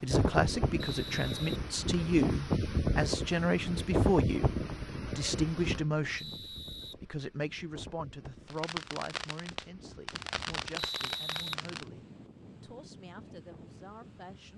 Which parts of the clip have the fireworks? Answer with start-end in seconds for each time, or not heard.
8.4-11.8.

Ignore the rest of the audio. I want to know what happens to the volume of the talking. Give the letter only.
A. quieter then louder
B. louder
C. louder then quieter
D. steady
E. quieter
E.